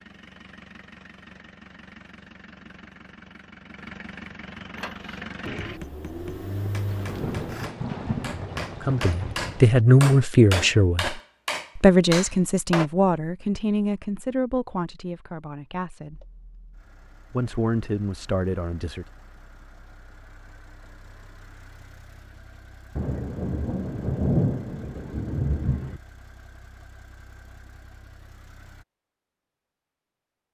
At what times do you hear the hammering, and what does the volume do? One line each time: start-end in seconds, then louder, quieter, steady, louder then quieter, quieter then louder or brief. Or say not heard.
4.8-12.9 louder.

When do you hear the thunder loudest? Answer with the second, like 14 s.
24 s.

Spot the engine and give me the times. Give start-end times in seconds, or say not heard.
0.0-7.7, 16.1-28.9.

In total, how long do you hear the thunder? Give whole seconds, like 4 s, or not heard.
6 s.